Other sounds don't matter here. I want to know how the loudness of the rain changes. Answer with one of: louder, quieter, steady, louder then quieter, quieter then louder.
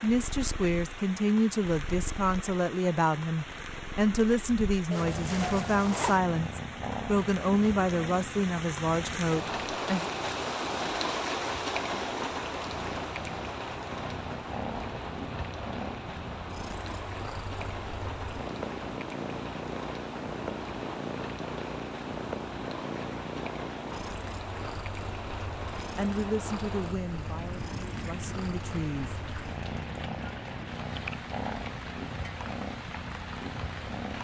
louder then quieter.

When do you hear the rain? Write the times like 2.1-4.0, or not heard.
0.0-34.1.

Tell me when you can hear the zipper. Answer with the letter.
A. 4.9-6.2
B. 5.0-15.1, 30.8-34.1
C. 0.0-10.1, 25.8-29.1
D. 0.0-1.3
A.